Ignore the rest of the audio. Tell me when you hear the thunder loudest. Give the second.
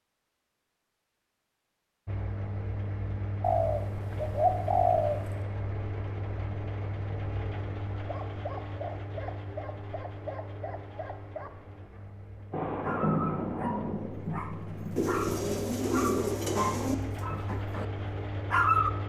13 s.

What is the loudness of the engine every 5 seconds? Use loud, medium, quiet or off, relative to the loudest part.
loud, loud, medium, loud.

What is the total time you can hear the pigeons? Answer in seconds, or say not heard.
4 s.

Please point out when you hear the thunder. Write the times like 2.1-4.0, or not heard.
12.5-15.2.